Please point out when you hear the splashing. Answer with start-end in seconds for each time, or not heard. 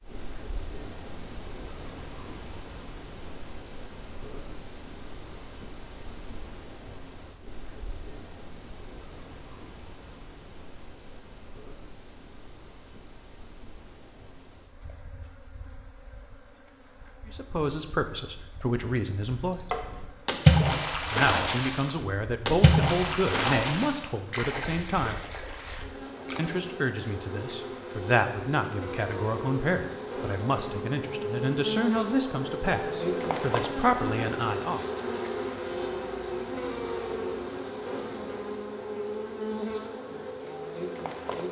19.7-26.5.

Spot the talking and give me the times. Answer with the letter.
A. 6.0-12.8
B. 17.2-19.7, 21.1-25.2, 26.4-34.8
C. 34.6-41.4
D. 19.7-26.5
B.